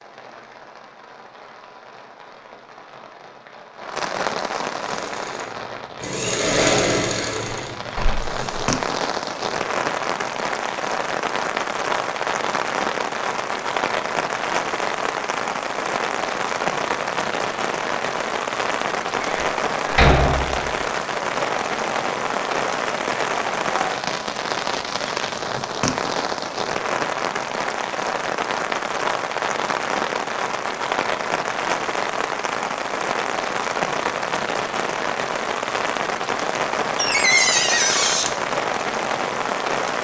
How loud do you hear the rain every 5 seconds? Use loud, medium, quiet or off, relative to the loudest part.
medium, loud, loud, loud, loud, loud, loud, loud.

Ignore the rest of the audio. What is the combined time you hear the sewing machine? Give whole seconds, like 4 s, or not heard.
4 s.